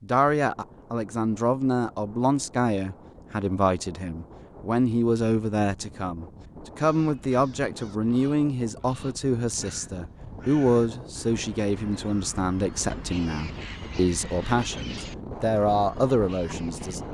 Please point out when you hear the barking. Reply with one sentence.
You can't hear the barking here.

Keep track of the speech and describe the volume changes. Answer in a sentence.
The volume of the speech stays about the same.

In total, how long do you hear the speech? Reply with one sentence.
The speech can be heard for 17 seconds in total.